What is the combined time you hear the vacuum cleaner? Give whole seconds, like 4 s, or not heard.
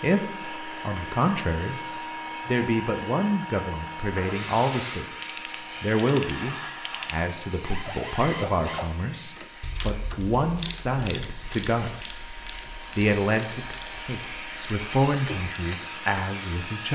17 s.